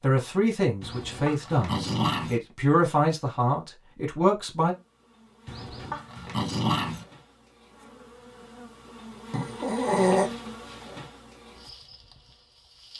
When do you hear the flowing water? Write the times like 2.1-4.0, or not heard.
not heard.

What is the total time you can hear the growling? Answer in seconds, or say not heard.
4 s.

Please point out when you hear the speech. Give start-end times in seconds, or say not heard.
0.0-4.8.